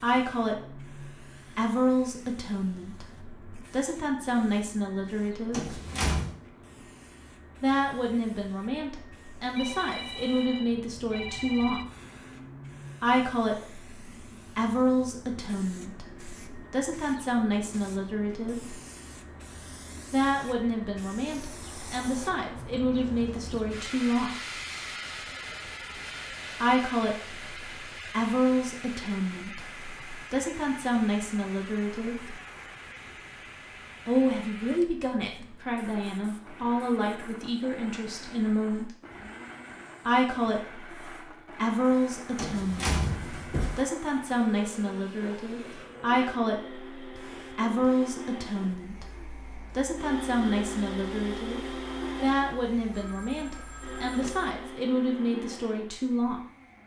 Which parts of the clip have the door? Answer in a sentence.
The door can be heard from 5.5 to 6.3 s and from 42.4 to 43.9 s.